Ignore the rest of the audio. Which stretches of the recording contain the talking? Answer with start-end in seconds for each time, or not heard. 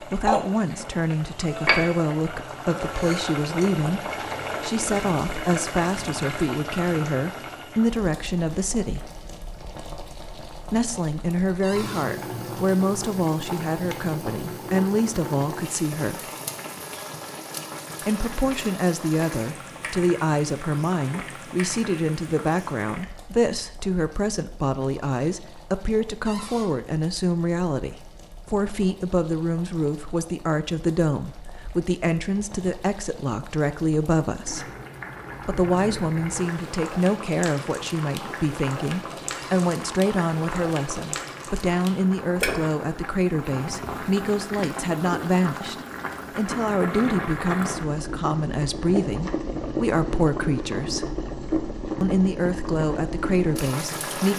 0.0-9.1, 10.7-16.3, 18.0-34.6, 35.4-51.1, 52.0-54.3.